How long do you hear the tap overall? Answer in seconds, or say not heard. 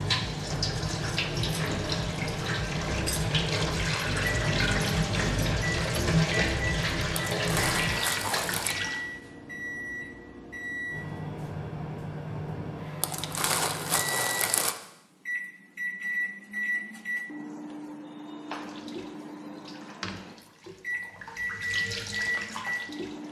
14 s.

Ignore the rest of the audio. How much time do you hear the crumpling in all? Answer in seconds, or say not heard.
3 s.